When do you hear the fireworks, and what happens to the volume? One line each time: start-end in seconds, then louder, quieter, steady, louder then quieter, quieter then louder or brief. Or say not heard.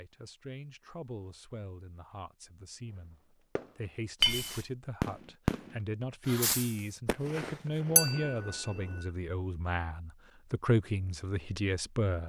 3.5-9.1 louder then quieter.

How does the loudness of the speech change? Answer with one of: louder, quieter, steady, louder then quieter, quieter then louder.
louder.